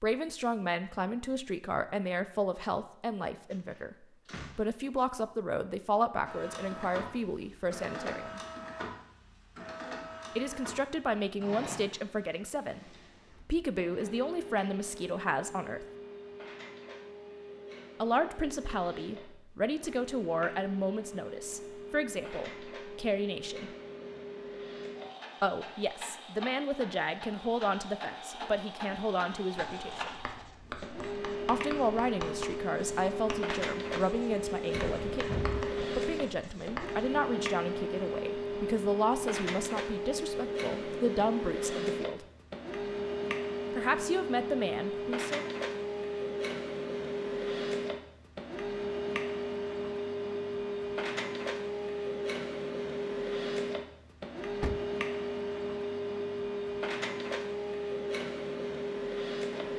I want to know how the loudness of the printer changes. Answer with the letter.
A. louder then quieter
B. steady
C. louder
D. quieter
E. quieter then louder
C.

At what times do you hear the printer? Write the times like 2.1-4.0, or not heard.
6.2-59.7.